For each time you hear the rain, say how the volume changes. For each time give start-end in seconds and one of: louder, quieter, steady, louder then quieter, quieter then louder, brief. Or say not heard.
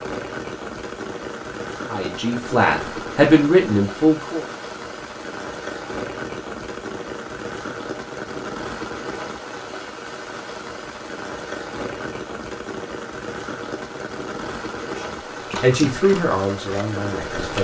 0.0-17.5 steady.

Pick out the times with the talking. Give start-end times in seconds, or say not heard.
1.9-4.5, 14.8-17.5.